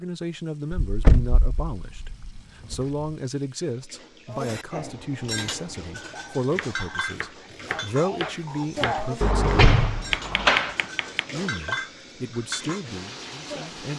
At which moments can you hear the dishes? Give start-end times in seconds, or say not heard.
4.3-13.7.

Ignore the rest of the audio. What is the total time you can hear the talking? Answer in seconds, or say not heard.
12 s.